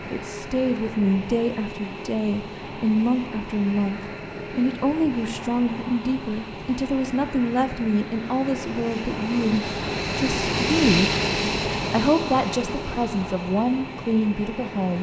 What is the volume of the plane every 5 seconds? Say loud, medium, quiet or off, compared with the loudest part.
medium, medium, loud.